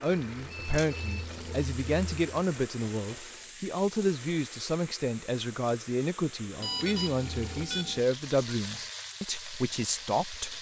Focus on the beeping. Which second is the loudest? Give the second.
7 s.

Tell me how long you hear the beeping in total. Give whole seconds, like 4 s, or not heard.
2 s.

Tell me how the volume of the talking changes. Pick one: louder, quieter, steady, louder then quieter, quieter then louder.
steady.